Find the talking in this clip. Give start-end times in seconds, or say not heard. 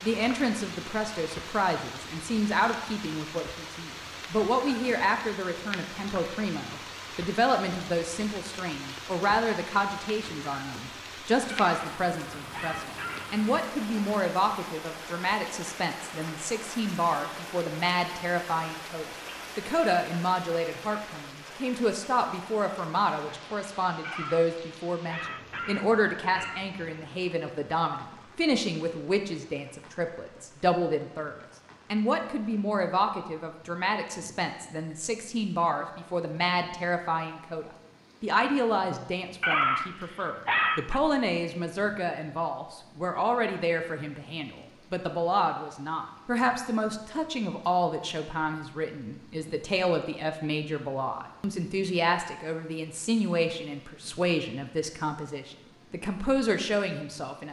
0.0-57.4.